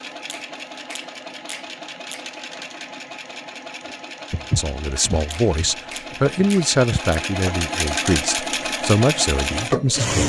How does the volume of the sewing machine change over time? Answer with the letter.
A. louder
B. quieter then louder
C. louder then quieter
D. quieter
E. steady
A.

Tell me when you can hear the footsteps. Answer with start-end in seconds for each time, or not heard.
4.3-7.0.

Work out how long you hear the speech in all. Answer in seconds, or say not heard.
6 s.